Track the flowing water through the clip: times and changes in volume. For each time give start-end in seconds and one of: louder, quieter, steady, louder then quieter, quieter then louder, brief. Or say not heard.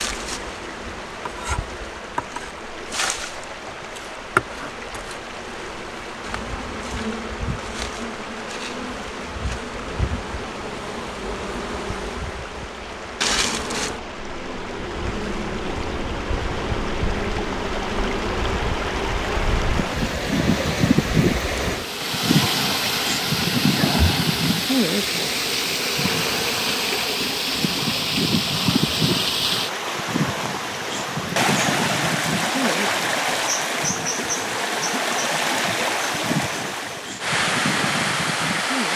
0.0-38.9 louder.